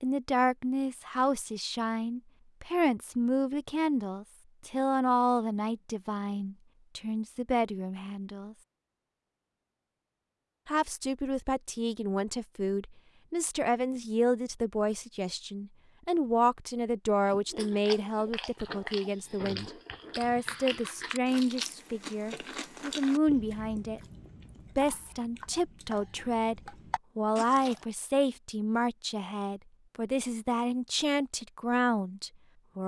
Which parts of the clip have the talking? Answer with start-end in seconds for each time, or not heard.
0.0-8.6, 10.7-24.0, 24.8-32.8.